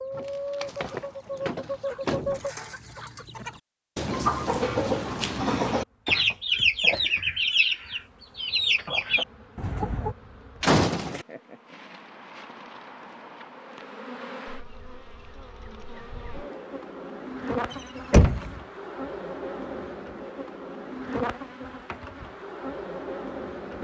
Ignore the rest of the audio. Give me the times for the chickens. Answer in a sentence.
You can hear the chickens from 0.0 to 10.2 s.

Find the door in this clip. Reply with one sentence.
You can hear the door from 0.1 to 2.5 s, from 10.6 to 11.2 s and from 17.7 to 18.6 s.